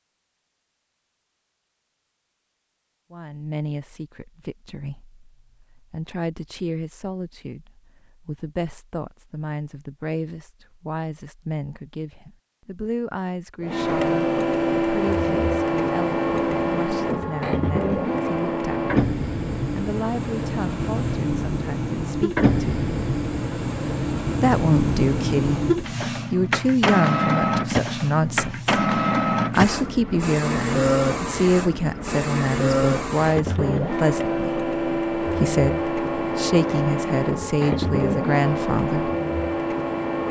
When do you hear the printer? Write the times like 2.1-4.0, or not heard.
13.6-40.2.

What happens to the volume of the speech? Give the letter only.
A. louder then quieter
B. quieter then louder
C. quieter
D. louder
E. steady
D.